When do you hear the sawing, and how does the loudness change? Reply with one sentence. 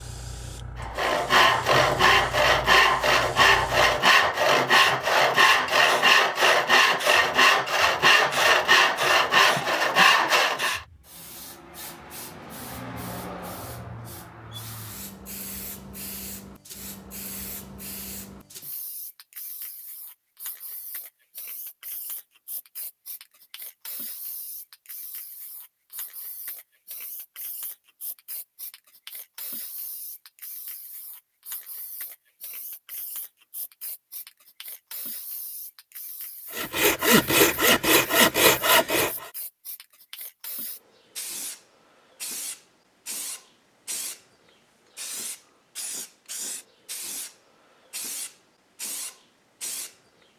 You can hear the sawing from 0.8 to 10.8 s, at a steady volume; and briefly from 36.5 to 39.3 s.